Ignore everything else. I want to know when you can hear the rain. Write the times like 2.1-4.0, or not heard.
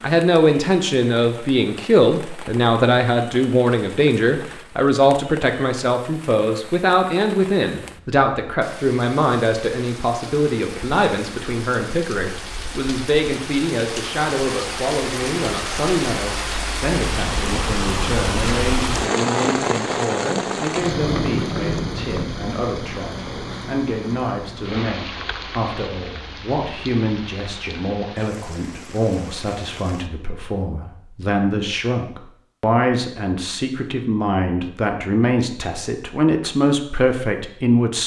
0.0-30.1.